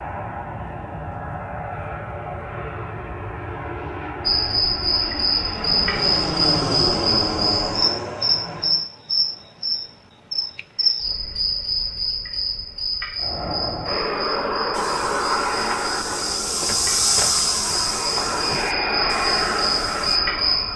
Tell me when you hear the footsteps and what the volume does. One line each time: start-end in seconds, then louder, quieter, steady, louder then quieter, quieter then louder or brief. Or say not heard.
14.7-20.2 louder then quieter.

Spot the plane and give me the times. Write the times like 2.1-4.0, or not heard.
0.0-8.8, 13.2-20.7.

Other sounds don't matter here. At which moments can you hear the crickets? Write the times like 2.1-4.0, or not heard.
4.2-20.7.